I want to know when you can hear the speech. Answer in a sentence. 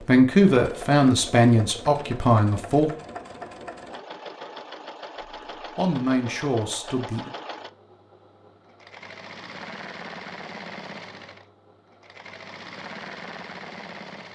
The speech can be heard from 0.0 to 2.9 s and from 5.8 to 7.3 s.